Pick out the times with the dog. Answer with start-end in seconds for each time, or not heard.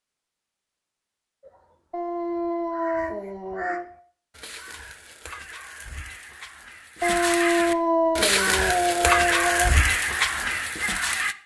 1.9-3.9, 7.0-9.8.